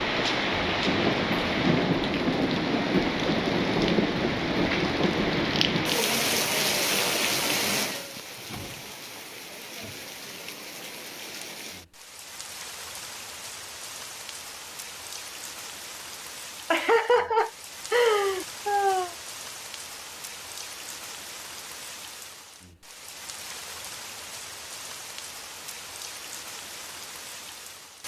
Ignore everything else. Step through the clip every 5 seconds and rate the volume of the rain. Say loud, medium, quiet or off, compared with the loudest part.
loud, loud, quiet, quiet, quiet, quiet.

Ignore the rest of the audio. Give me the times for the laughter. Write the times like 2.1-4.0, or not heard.
16.7-19.1.